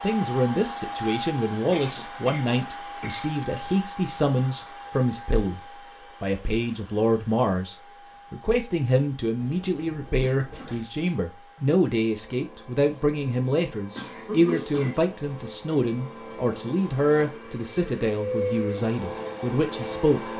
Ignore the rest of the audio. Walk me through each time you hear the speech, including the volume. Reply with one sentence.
The speech can be heard from 0.0 to 20.3 s, at a steady volume.